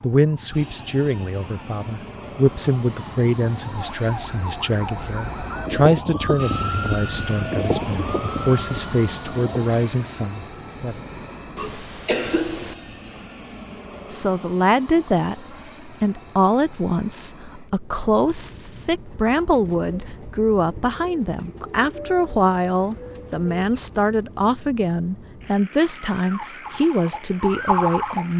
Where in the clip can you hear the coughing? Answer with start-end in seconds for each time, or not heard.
11.6-12.8.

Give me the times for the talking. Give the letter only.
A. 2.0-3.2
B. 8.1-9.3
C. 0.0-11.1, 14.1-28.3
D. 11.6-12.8
C.